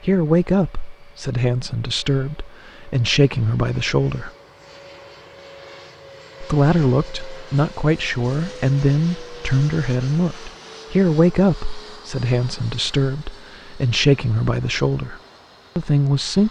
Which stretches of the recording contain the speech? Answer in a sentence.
You can hear the speech from 0.0 to 4.3 s and from 6.4 to 16.4 s.